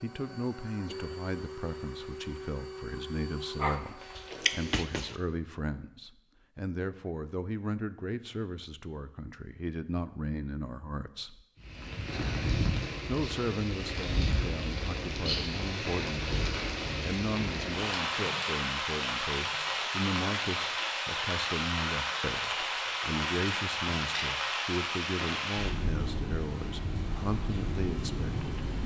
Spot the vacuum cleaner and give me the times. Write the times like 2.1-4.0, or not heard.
0.0-4.8.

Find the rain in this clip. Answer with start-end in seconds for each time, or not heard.
11.6-28.8.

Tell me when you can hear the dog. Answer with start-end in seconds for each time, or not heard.
3.5-5.2.